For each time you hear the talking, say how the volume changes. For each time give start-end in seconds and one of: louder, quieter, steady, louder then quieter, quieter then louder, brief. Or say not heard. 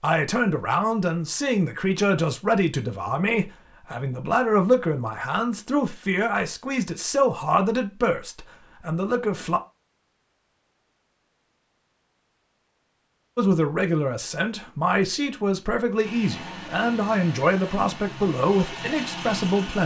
0.0-9.6 steady
13.3-19.8 steady.